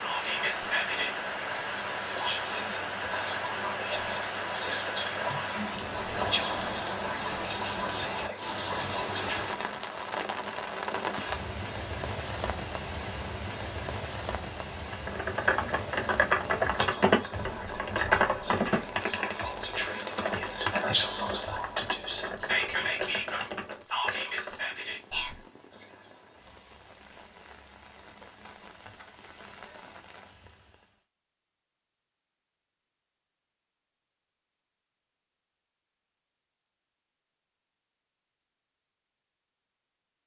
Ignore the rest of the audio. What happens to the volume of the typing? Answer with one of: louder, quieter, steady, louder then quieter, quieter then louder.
quieter.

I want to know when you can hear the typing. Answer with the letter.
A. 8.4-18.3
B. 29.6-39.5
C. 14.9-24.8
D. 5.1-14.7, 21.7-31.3
C.